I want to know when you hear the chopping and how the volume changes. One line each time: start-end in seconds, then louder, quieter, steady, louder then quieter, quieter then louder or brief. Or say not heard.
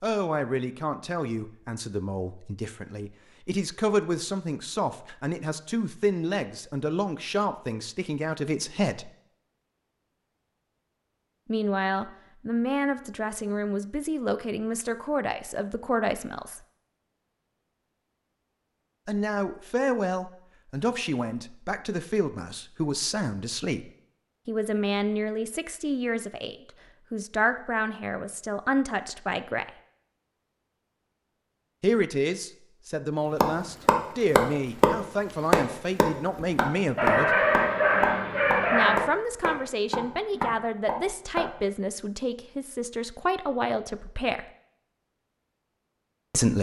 33.4-41.5 quieter.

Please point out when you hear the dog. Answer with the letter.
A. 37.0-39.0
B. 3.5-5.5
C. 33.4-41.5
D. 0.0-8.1
A.